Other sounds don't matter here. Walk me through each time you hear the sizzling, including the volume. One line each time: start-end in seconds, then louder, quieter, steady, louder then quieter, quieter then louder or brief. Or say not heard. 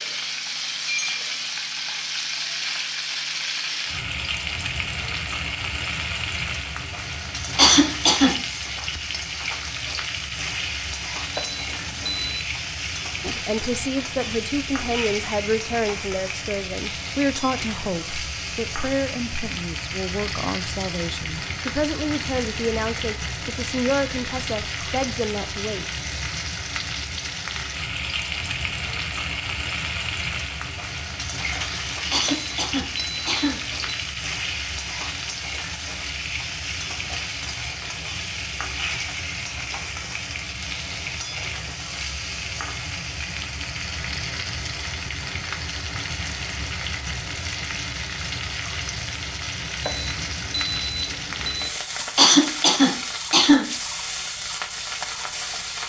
0.0-55.8 steady.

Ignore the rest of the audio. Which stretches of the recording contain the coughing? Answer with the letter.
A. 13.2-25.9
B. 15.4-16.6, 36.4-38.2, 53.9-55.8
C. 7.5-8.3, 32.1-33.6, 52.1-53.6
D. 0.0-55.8
C.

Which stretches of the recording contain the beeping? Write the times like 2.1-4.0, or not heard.
11.3-12.4, 32.2-34.1, 49.8-51.7.